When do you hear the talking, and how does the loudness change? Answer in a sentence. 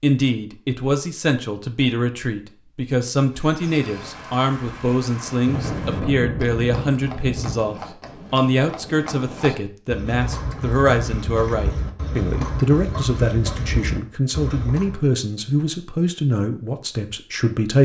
The talking can be heard from 0.0 to 17.7 s, at a steady volume.